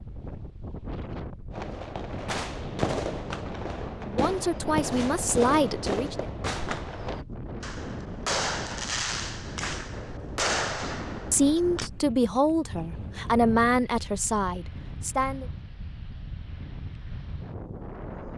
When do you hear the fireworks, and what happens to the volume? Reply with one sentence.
The fireworks can be heard from 1.5 to 11.9 s, at a steady volume.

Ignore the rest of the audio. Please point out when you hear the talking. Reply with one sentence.
You can hear the talking from 4.0 to 6.2 s and from 11.3 to 15.4 s.